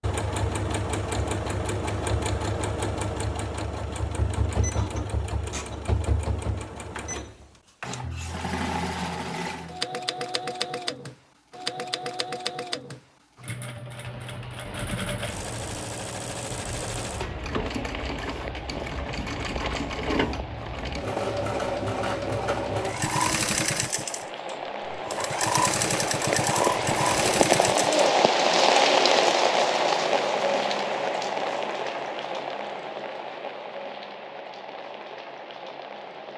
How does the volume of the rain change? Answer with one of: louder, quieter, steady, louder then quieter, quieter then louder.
louder then quieter.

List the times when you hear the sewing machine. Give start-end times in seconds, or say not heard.
0.0-28.1.